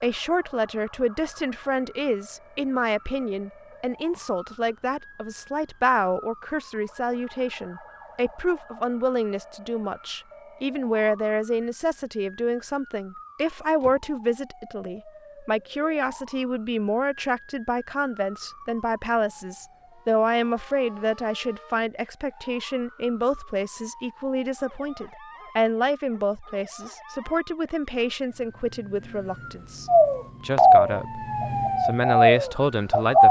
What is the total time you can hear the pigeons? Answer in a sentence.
The pigeons can be heard for 3 seconds in total.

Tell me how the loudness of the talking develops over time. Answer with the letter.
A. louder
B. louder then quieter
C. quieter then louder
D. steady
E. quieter
D.